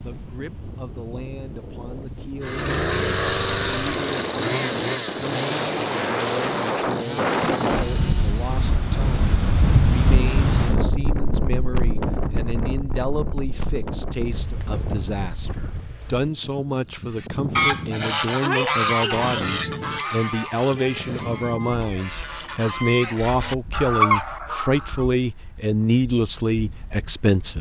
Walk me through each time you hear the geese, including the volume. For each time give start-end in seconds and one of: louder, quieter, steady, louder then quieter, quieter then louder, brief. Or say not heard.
17.1-25.1 quieter then louder.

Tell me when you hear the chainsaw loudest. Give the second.
3 s.